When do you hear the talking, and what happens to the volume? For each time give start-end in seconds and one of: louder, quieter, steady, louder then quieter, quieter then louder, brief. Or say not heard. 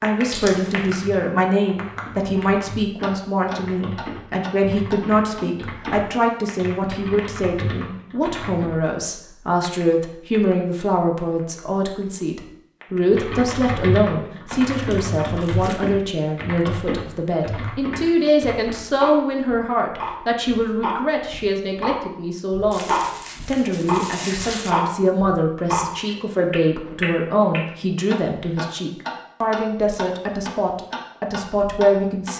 0.0-32.3 steady.